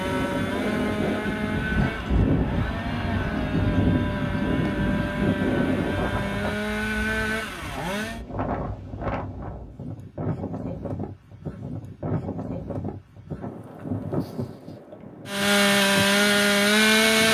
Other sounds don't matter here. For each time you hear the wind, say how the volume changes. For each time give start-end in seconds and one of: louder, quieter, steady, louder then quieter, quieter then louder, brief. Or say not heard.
0.0-17.3 quieter.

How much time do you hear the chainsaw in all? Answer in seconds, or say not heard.
10 s.